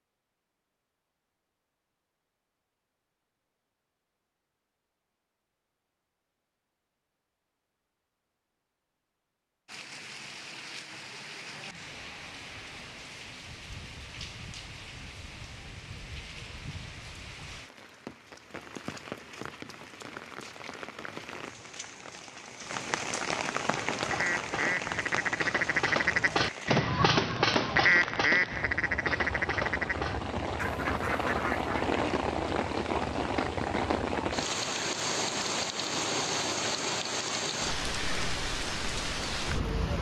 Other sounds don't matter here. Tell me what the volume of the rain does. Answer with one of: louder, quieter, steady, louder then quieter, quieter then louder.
louder.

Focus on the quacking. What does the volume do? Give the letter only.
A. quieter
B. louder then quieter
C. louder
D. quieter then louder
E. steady
B.